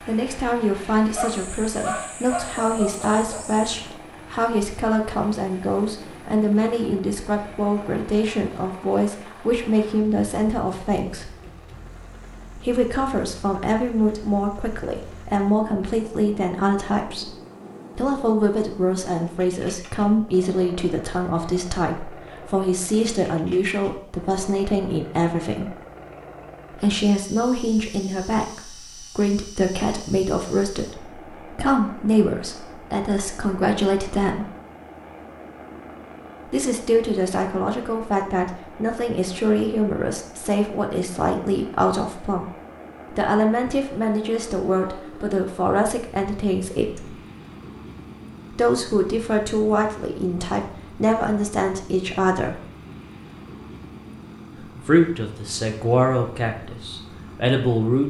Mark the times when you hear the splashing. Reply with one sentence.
The splashing can't be heard in this clip.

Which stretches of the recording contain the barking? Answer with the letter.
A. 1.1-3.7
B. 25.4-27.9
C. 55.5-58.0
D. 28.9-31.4
A.